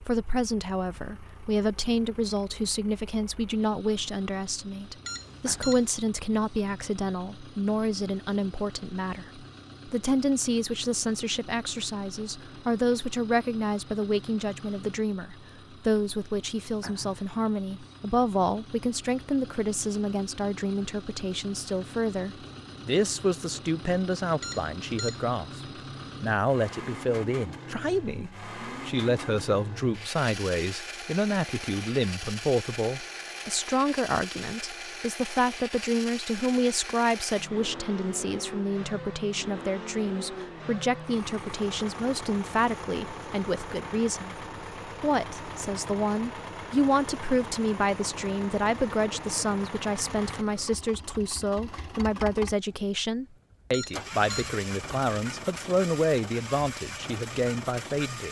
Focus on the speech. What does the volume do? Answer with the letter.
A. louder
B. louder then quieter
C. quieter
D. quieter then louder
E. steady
E.